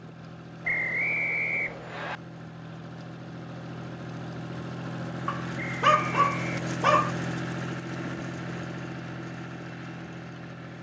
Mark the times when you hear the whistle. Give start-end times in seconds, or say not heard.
0.7-2.2, 5.5-6.5.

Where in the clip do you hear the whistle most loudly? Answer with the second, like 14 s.
1 s.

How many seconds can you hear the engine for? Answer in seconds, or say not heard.
11 s.